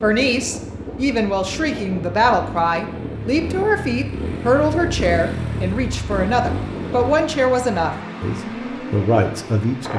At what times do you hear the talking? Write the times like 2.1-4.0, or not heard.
0.0-9.9.